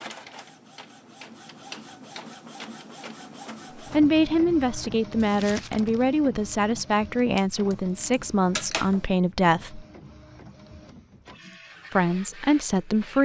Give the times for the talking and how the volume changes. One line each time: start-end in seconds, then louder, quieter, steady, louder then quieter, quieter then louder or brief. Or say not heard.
3.9-9.8 steady
11.9-13.2 brief.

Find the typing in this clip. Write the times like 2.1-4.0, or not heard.
not heard.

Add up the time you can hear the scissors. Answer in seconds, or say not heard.
2 s.